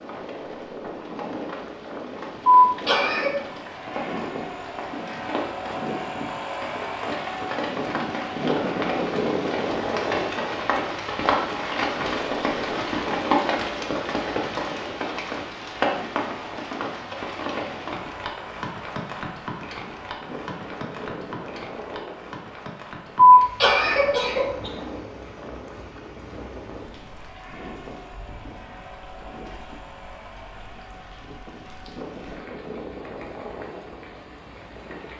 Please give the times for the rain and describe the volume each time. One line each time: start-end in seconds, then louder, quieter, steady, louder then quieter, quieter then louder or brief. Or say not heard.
0.0-35.1 louder then quieter.